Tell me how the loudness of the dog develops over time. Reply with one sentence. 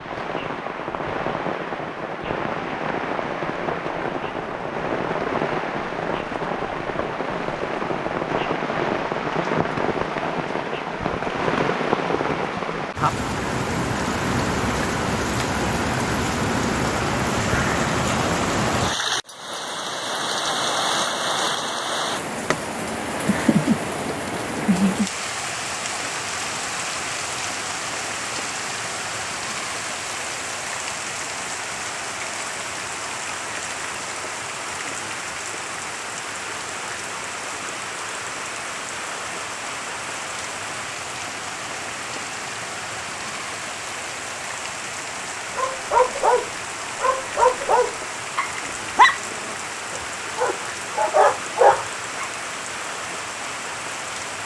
The volume of the dog goes down, then up.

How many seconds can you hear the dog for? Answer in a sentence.
You can hear the dog for 7 seconds altogether.